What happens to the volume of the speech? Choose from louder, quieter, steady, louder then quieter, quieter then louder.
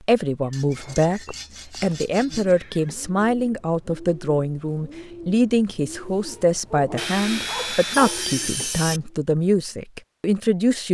steady.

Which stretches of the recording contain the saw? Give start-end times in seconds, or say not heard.
0.5-2.5, 7.0-9.0.